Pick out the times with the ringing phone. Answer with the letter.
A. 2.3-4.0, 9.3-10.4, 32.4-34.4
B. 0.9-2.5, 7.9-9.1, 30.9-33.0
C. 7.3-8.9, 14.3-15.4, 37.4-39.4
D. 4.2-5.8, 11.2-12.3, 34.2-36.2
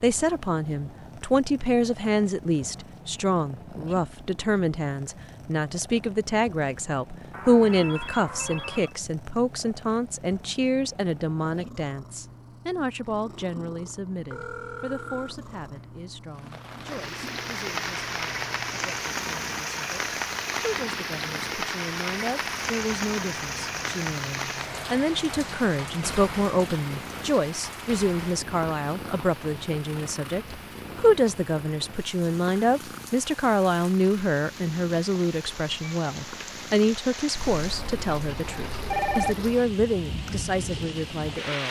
C.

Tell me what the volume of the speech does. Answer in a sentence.
The loudness of the speech goes down, then up.